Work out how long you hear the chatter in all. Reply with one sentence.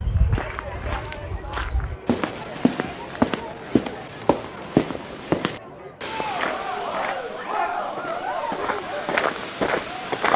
You can hear the chatter for 10 seconds altogether.